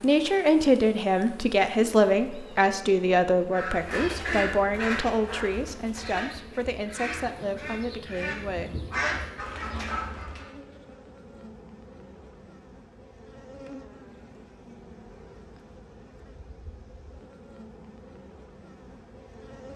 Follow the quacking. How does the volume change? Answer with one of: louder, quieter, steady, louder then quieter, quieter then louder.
quieter then louder.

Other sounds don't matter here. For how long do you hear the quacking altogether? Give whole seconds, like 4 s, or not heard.
7 s.